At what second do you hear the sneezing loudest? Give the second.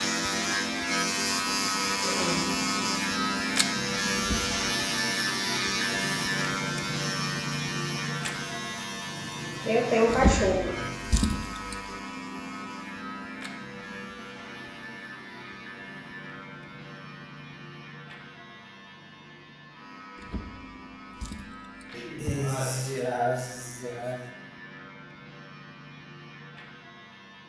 10 s.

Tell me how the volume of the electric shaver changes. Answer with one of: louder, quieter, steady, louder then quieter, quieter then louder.
quieter.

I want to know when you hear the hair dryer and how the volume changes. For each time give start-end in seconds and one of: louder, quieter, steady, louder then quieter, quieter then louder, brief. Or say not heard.
not heard.